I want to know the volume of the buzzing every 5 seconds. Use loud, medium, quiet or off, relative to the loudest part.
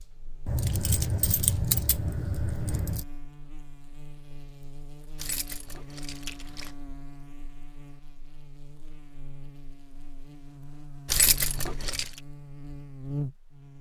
medium, medium, loud.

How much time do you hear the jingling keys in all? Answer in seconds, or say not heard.
5 s.